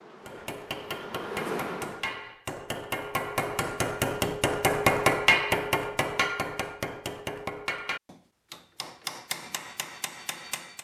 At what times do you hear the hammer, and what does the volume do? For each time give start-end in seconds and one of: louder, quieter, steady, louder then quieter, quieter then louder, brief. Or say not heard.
0.2-10.7 louder then quieter.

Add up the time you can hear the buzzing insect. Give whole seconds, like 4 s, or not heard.
2 s.